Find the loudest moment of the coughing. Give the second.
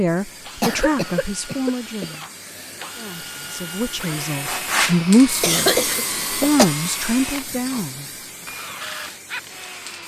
6 s.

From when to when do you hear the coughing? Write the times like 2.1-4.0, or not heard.
0.6-2.9, 5.4-6.7.